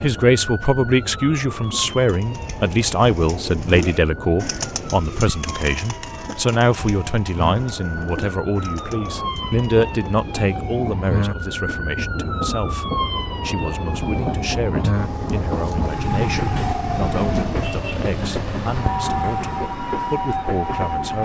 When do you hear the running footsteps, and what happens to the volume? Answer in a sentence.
You can't hear the running footsteps here.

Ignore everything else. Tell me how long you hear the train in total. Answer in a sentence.
The train can be heard for 21 seconds in total.